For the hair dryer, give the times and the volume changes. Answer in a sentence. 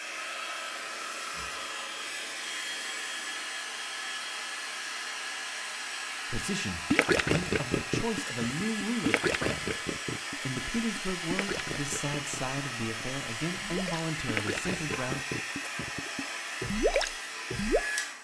You can hear the hair dryer from 0.0 to 18.2 s, at a steady volume.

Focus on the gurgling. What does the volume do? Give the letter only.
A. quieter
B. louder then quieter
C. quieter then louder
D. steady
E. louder
C.